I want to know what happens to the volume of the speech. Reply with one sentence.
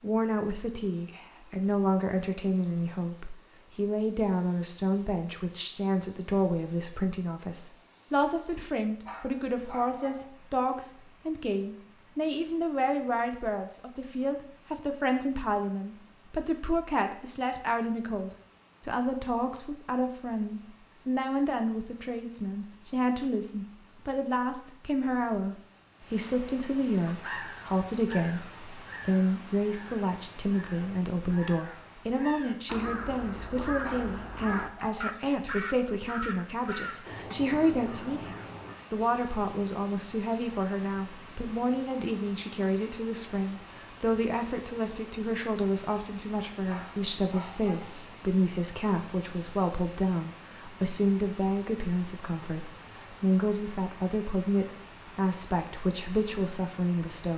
The loudness of the speech stays about the same.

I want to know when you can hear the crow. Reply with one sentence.
You can hear the crow from 27.1 to 38.8 s.